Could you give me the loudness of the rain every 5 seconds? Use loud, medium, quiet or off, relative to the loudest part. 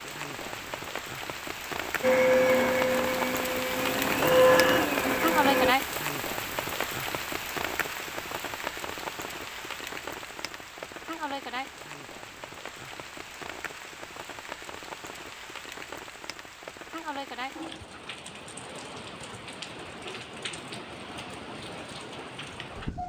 loud, loud, medium, medium, medium.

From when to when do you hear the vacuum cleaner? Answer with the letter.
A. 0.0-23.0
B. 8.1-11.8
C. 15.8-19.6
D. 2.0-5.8
D.